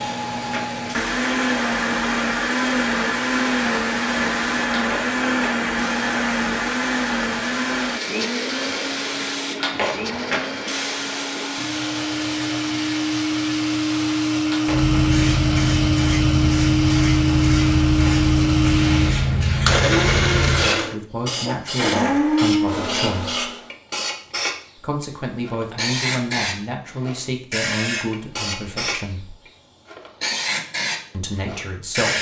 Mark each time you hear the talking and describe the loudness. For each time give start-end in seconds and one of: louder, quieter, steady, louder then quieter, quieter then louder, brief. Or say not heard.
20.5-23.4 brief
24.8-29.4 quieter
31.1-32.1 brief.